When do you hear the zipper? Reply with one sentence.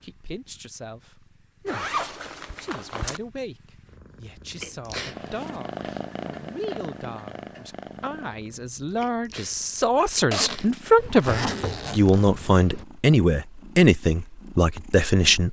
You can hear the zipper from 1.6 to 3.2 s and from 10.3 to 12.3 s.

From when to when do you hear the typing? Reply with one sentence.
You can't hear the typing here.